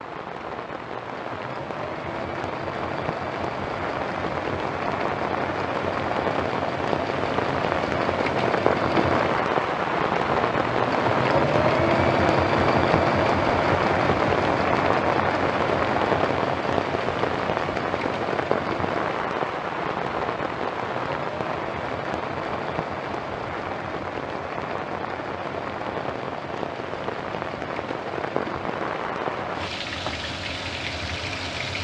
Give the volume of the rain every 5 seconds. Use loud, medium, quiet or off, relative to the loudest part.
medium, loud, loud, loud, medium, medium, medium.